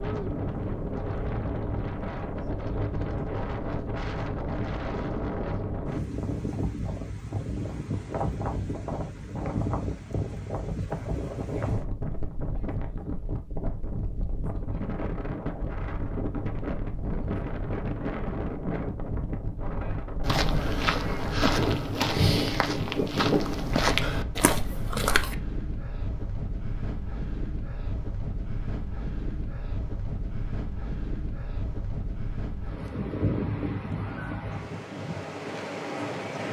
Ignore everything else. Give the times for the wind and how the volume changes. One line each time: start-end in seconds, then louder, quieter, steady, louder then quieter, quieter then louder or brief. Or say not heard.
0.0-36.4 steady.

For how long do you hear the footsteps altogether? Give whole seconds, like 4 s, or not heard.
5 s.